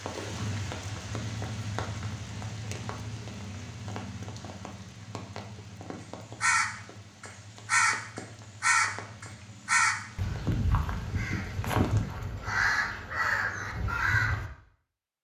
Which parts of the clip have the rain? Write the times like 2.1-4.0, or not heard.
0.0-12.2.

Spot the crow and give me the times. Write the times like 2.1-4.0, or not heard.
6.4-14.5.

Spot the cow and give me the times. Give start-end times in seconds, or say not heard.
not heard.